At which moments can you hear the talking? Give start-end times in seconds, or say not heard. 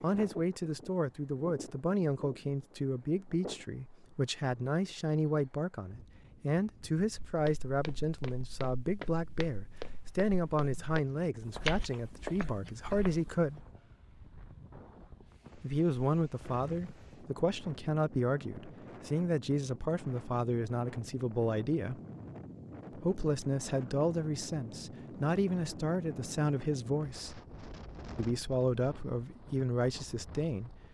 0.0-13.7, 15.6-22.0, 22.9-27.4, 28.1-30.8.